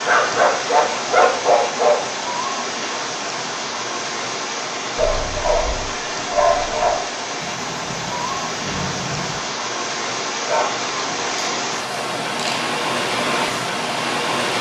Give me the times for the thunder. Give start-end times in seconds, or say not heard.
7.4-9.4.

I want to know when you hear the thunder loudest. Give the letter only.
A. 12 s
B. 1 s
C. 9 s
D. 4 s
C.